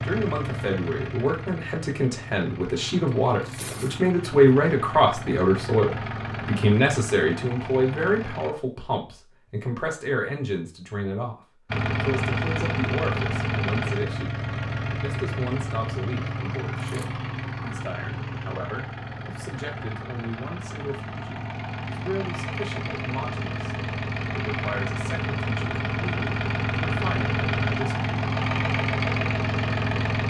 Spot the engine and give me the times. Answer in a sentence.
The engine can be heard from 0.0 to 8.6 s and from 11.7 to 30.2 s.